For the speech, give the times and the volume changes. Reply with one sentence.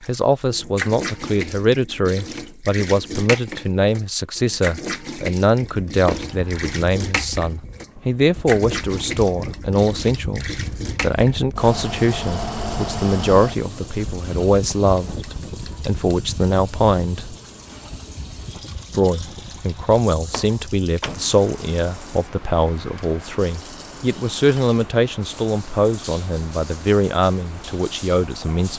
The speech can be heard from 0.1 to 17.4 s, at a steady volume; and from 18.9 to 28.7 s, at a steady volume.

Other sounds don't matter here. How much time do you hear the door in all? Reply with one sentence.
You can hear the door for 2 seconds altogether.